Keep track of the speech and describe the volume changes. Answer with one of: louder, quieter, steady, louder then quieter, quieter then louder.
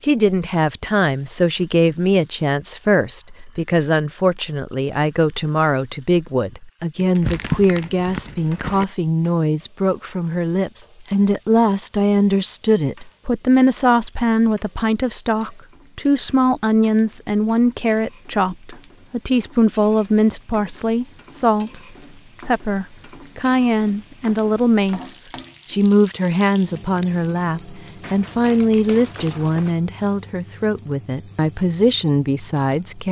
steady.